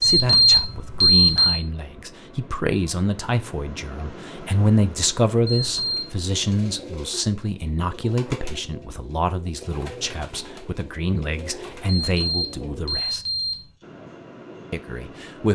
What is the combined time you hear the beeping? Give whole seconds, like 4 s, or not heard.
4 s.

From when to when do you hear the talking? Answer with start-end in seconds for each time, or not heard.
0.0-13.2, 14.7-15.4.